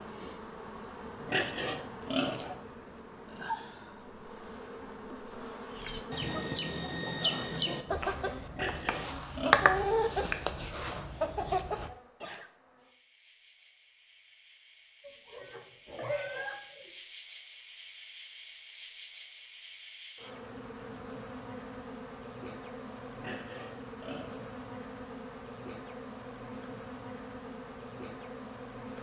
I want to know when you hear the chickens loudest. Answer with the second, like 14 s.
10 s.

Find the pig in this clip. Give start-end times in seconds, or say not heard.
1.2-2.6, 8.4-9.8, 15.0-16.9, 23.1-24.6.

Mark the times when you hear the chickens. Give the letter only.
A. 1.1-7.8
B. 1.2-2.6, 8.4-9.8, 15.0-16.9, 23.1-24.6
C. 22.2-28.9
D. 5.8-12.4
D.